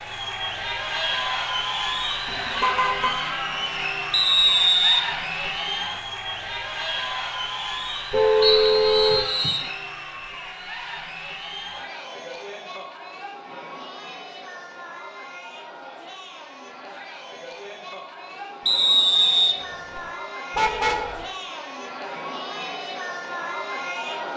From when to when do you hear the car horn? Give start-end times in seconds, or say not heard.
2.2-3.1, 8.1-9.2, 20.6-21.2.